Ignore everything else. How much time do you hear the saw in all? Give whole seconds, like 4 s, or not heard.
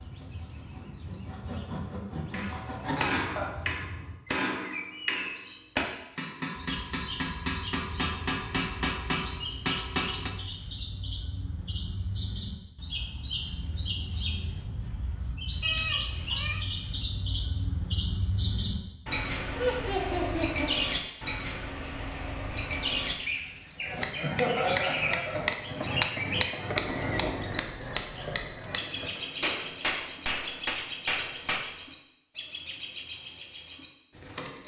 3 s.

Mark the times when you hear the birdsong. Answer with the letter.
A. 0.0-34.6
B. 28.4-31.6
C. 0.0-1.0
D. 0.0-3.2
A.